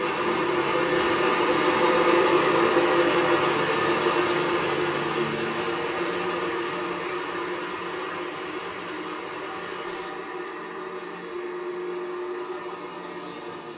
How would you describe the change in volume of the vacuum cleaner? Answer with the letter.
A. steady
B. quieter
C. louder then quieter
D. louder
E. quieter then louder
B.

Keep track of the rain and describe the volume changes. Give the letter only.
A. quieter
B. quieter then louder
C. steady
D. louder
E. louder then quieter
A.